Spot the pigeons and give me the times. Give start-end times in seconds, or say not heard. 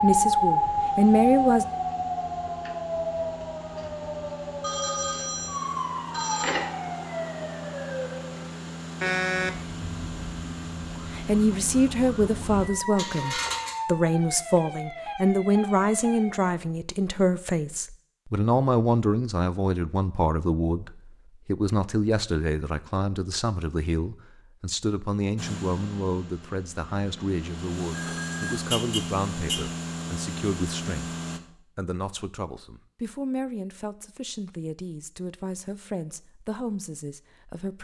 not heard.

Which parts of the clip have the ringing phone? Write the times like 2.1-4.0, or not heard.
4.6-6.7, 12.9-13.8, 27.9-28.6.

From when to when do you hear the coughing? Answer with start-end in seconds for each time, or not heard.
not heard.